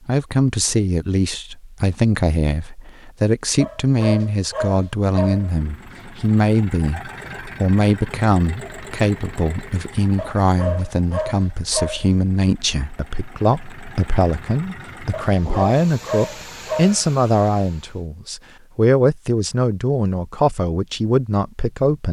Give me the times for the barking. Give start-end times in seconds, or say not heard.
3.6-5.5, 10.2-12.2, 15.1-17.0.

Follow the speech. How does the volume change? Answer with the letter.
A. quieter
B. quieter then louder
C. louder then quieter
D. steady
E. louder
D.